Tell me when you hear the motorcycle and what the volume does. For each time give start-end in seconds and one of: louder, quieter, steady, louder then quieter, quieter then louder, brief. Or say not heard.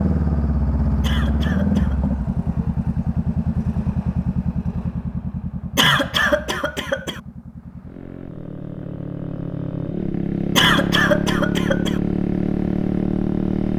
0.0-13.7 quieter then louder.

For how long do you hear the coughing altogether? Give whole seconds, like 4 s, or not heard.
4 s.